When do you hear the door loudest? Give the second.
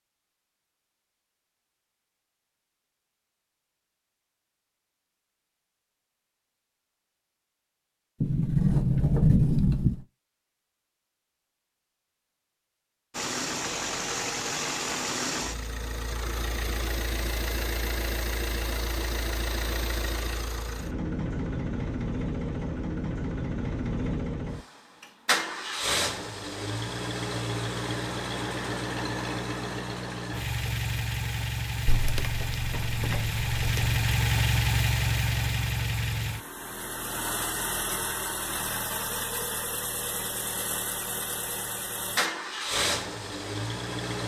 9 s.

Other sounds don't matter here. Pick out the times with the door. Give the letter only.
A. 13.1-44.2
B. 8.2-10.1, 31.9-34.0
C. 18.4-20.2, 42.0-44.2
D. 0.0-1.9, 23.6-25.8
B.